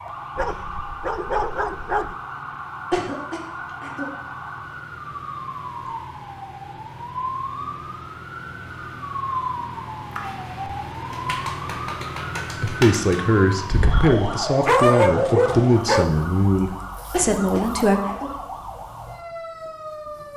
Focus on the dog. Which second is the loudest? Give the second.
15 s.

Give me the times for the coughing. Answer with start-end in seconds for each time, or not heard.
2.9-4.1, 17.1-18.4.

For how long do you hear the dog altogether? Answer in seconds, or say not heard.
4 s.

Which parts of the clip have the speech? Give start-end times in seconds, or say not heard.
12.6-18.0.